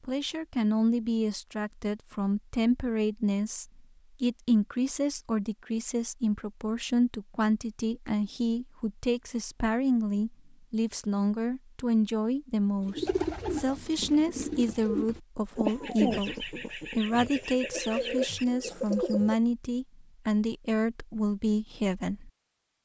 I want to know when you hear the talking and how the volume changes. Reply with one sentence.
The talking can be heard from 0.0 to 22.3 s, at a steady volume.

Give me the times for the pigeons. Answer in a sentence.
You can hear the pigeons from 12.8 to 19.4 s.